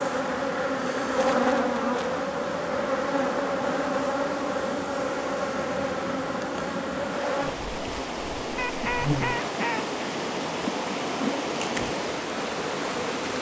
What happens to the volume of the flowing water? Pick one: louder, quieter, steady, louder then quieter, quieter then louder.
louder.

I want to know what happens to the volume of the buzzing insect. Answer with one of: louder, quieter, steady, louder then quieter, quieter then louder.
quieter.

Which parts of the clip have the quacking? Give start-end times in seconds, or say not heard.
8.6-9.8.